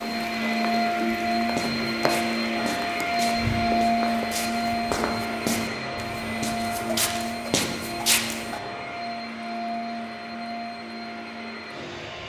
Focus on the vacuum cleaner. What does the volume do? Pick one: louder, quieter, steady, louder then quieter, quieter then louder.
quieter.